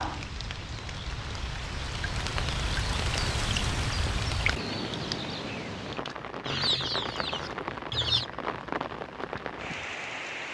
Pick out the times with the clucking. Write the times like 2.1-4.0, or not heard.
6.5-8.2.